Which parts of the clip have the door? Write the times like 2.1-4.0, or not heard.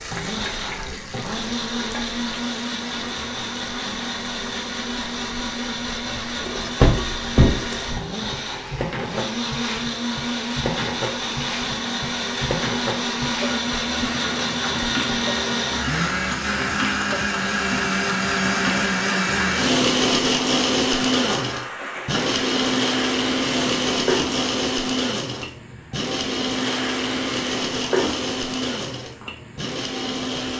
6.8-7.7.